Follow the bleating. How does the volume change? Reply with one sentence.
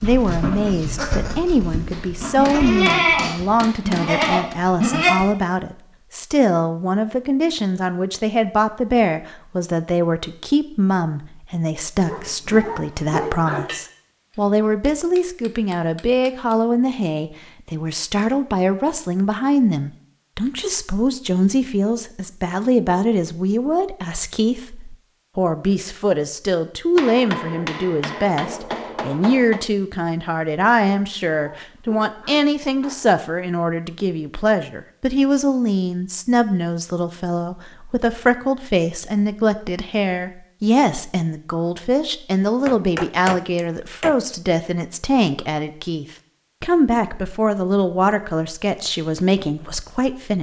The volume of the bleating goes down, then up.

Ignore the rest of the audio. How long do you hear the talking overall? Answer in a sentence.
You can hear the talking for 50 seconds altogether.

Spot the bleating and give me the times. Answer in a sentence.
You can hear the bleating from 0.0 to 5.2 s.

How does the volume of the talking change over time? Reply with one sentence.
The loudness of the talking stays about the same.